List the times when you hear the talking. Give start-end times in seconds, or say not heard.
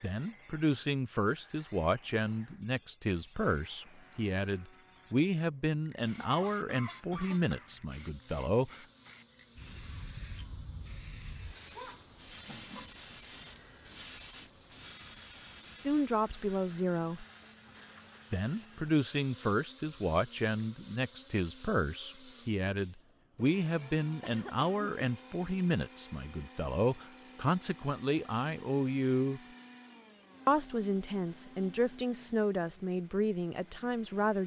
0.0-8.8, 15.8-17.2, 18.3-29.4, 30.4-34.4.